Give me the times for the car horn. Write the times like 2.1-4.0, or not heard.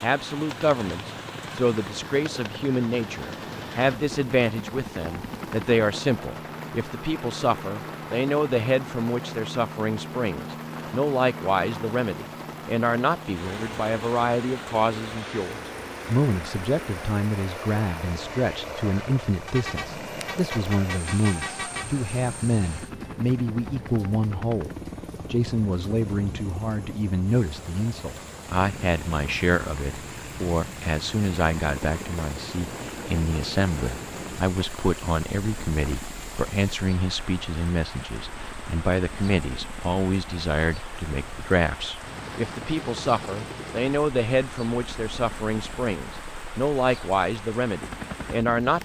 19.4-21.9.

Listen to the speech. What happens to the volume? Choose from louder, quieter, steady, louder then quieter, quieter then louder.
steady.